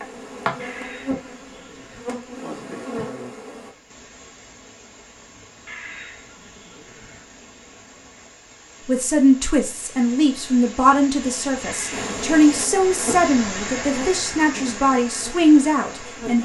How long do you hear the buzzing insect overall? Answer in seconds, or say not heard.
8 s.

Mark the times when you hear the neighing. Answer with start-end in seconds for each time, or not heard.
0.6-2.0, 5.7-7.2, 11.6-12.0.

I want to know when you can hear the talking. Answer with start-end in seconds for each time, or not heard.
8.8-16.3.